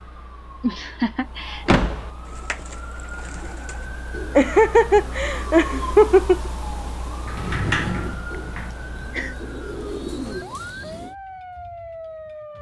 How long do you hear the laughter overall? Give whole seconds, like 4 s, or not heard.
4 s.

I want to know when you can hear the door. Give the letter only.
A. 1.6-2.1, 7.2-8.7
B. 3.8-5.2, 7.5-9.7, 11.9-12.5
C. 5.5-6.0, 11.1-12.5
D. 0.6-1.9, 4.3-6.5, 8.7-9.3
A.